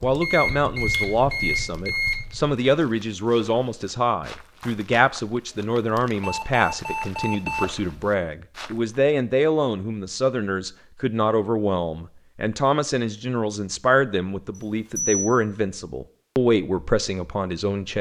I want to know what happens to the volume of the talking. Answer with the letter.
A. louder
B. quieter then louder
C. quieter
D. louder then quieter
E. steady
E.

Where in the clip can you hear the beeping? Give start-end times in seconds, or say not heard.
0.2-2.2, 6.1-7.7, 14.6-15.2.